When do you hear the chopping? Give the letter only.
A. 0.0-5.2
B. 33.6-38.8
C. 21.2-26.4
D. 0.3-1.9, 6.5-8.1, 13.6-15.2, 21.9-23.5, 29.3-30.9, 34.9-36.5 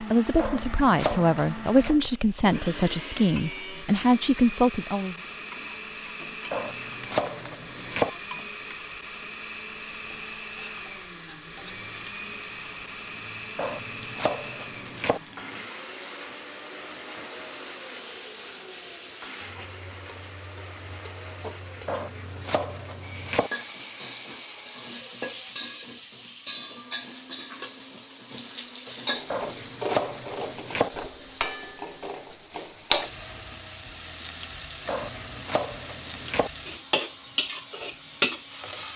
D.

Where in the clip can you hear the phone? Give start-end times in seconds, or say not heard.
not heard.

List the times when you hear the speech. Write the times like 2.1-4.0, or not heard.
0.0-5.2.